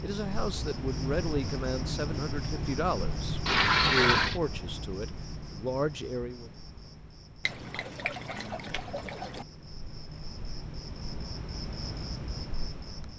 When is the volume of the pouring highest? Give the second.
4 s.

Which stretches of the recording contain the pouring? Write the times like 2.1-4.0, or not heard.
3.5-4.4, 7.5-9.4.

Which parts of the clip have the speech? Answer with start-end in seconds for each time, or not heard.
0.0-6.5.